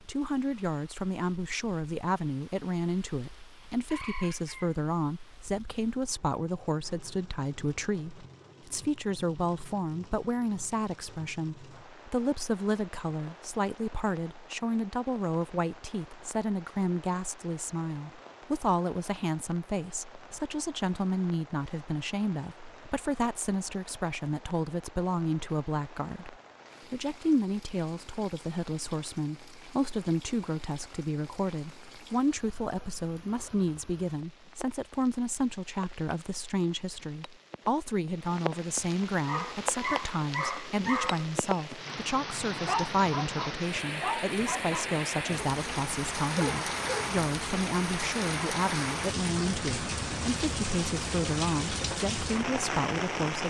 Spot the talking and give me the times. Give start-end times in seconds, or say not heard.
0.1-53.4.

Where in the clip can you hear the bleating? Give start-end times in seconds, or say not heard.
not heard.